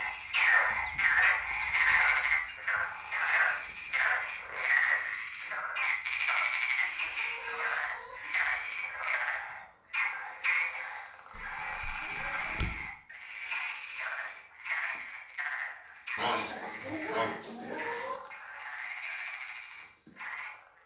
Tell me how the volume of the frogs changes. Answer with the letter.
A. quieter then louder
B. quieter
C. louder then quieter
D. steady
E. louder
B.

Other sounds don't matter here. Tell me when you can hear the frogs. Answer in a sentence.
You can hear the frogs from 0.0 to 20.8 s.